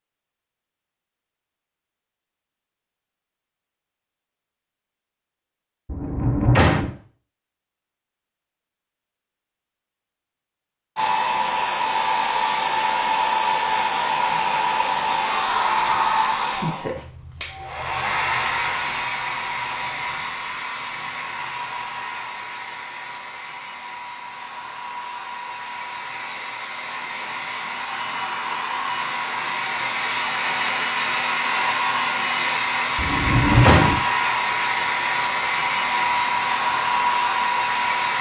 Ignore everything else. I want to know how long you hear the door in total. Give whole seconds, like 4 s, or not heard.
2 s.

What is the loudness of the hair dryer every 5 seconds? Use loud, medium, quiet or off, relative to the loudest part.
off, off, loud, loud, medium, medium, loud, loud.